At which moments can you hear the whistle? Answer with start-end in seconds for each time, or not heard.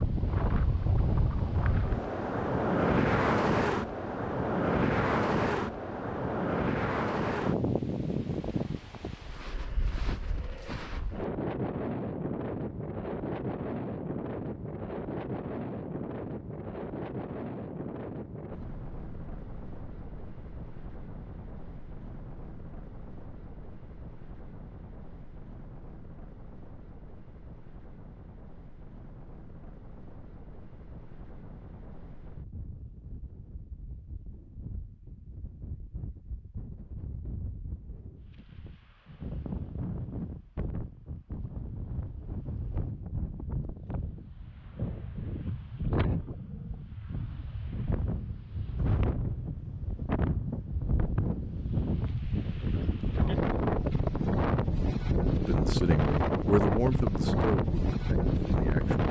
not heard.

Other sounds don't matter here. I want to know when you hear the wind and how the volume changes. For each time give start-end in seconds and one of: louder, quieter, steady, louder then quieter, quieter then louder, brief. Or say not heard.
0.0-59.0 quieter then louder.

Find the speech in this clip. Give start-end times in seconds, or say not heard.
55.4-59.0.